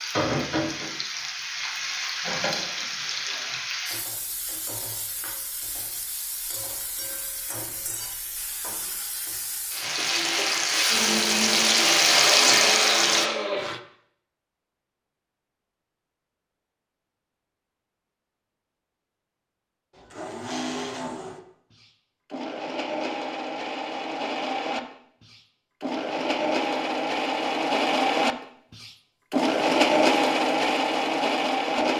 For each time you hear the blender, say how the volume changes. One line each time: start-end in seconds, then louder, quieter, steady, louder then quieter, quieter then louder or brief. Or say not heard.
10.9-13.8 brief
19.9-31.9 louder.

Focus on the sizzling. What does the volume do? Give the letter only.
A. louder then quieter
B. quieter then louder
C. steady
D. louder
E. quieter
B.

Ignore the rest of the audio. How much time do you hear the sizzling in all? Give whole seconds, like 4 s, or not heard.
13 s.